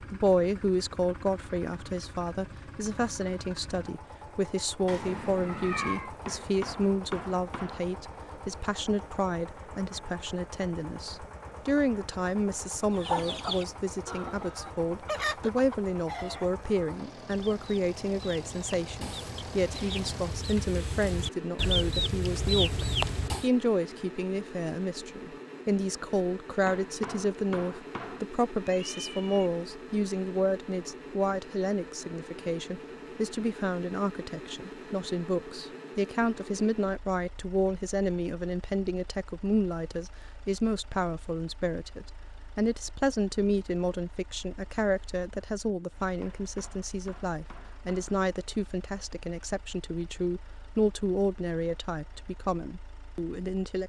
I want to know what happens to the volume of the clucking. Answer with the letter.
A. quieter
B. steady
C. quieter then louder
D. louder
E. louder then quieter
C.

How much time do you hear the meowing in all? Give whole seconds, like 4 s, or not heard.
2 s.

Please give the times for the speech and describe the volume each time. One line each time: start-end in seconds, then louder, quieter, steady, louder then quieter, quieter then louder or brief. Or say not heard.
0.1-53.8 steady.